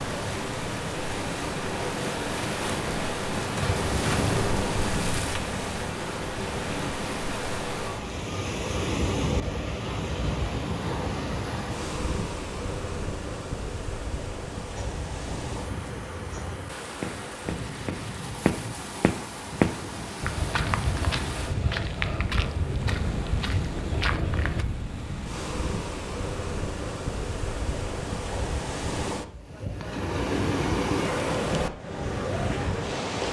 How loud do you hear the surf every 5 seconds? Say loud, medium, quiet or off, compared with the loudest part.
loud, loud, medium, medium, medium, medium, loud.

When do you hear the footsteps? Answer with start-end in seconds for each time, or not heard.
14.8-24.6.